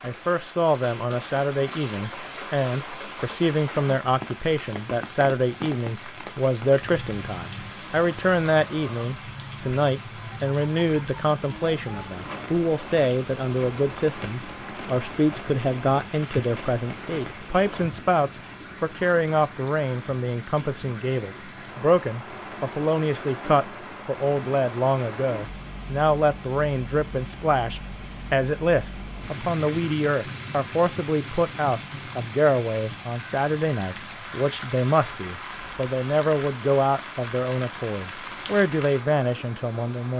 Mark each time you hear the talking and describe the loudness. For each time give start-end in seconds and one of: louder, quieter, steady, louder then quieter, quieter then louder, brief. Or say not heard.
0.0-40.1 steady.